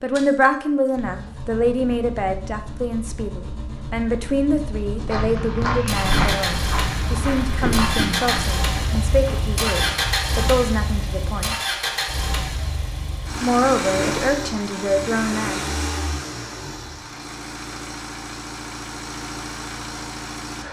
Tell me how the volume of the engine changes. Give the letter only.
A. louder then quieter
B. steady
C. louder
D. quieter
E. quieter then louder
A.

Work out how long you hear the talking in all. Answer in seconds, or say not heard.
14 s.